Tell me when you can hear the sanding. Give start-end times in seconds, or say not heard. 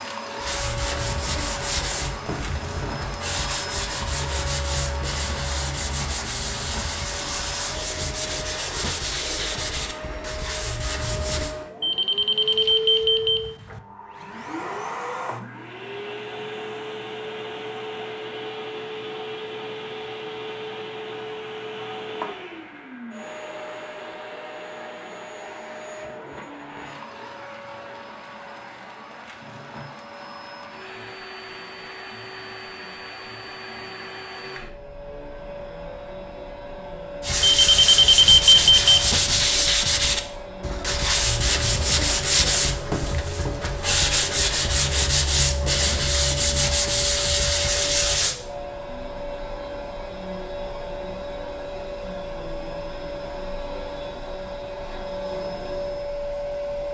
0.4-11.6, 37.2-48.4.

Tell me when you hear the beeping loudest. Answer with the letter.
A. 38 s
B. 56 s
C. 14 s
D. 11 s
A.